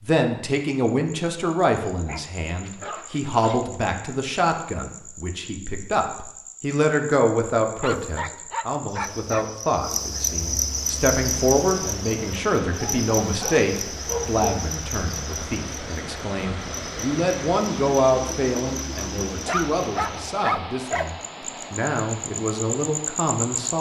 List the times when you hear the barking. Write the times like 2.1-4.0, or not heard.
2.0-3.7, 7.8-9.4, 12.7-14.4, 19.4-21.1.